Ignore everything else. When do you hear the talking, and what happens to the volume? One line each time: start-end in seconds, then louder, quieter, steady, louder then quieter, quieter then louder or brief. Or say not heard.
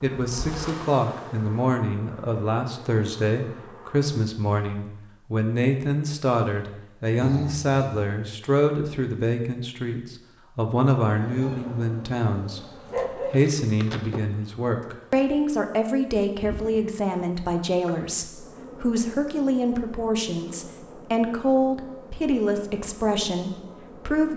0.0-24.3 steady.